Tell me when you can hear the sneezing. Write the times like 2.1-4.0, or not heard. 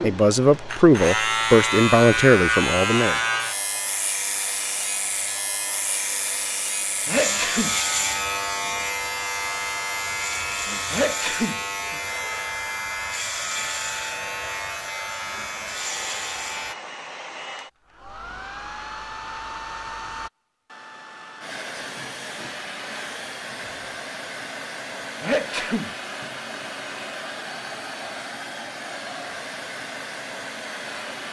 7.0-7.8, 10.9-11.6, 25.2-25.9.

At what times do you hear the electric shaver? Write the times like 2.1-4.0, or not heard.
0.0-16.8.